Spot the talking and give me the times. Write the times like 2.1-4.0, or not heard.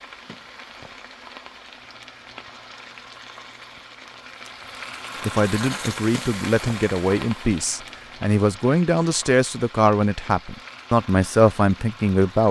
5.2-12.4.